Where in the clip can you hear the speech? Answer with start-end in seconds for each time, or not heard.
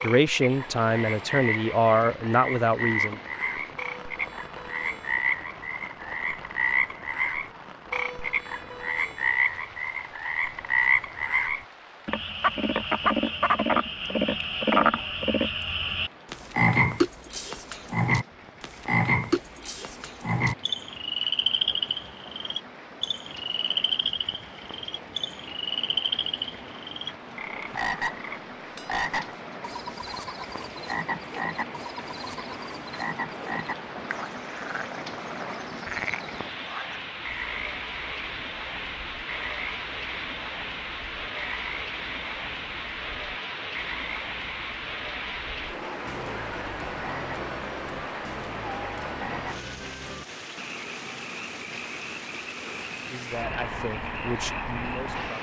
0.0-3.2, 53.0-55.3.